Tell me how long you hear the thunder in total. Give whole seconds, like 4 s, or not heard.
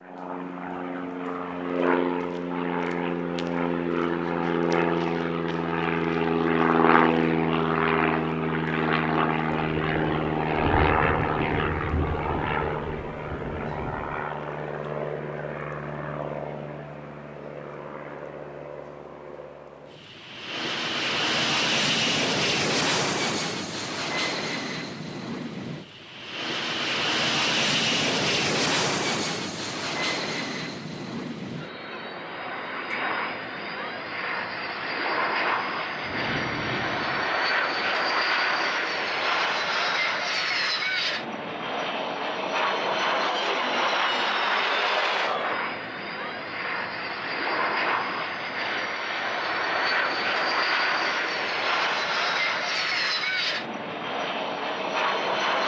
6 s.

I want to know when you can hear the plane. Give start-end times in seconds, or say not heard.
0.0-55.6.